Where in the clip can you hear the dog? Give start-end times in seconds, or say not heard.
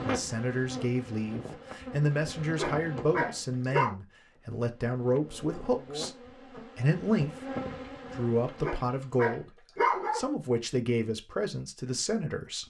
1.8-4.0, 7.8-10.2.